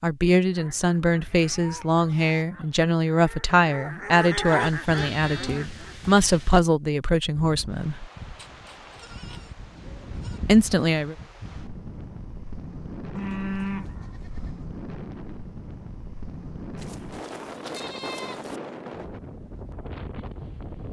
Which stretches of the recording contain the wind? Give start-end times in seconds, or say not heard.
7.3-20.8.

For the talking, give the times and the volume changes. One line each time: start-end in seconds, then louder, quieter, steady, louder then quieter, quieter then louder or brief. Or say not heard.
0.0-8.1 steady
10.4-11.2 brief.